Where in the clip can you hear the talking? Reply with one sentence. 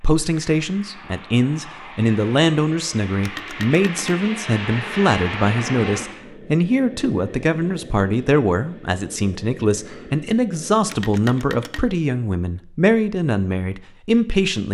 The talking can be heard from 0.0 to 14.6 s.